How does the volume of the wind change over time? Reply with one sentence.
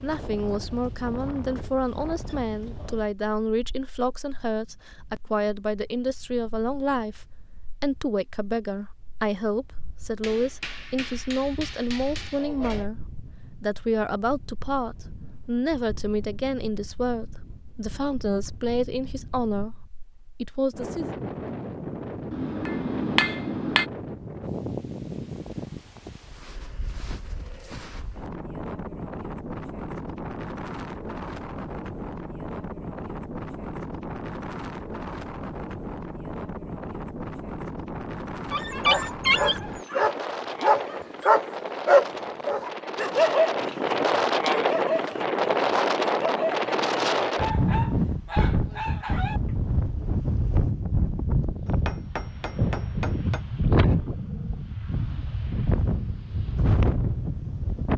The loudness of the wind goes up.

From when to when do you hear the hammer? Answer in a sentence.
The hammer can be heard from 10.2 to 12.8 s, from 22.3 to 23.9 s and from 51.6 to 53.5 s.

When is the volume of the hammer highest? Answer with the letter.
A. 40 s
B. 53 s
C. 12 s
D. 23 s
D.